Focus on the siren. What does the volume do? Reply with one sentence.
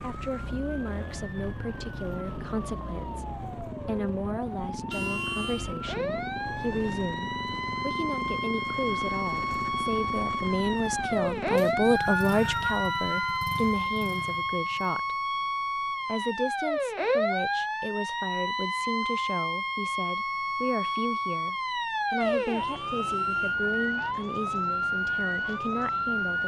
The loudness of the siren goes up.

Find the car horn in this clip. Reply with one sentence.
You can hear the car horn from 4.9 to 5.8 s and from 22.2 to 23.6 s.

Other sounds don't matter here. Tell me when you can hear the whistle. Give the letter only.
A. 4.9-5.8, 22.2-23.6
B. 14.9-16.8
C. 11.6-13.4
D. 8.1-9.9
C.